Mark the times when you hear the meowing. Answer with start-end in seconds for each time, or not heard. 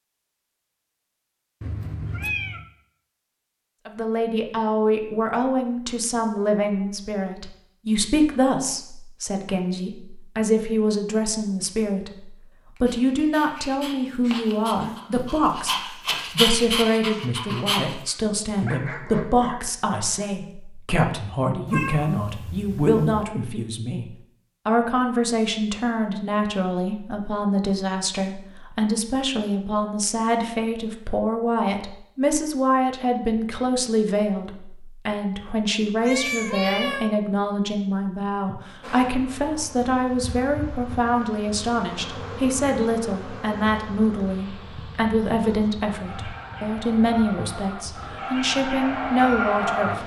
1.6-2.6, 21.6-23.2, 36.0-37.1.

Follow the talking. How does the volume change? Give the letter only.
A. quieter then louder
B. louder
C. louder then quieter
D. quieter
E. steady
E.